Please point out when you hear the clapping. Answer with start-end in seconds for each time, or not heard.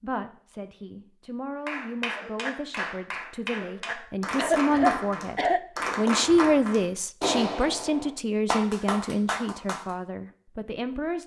1.6-9.9.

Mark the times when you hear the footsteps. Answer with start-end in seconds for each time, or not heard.
not heard.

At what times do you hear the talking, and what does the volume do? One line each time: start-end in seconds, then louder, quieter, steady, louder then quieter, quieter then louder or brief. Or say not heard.
0.0-11.2 louder then quieter.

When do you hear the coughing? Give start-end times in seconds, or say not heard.
4.3-5.6.